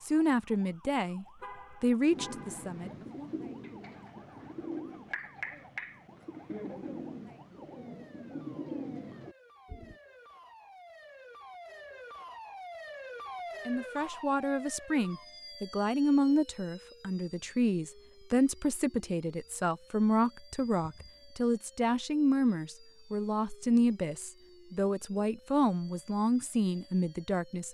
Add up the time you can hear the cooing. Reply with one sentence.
You can hear the cooing for 8 seconds altogether.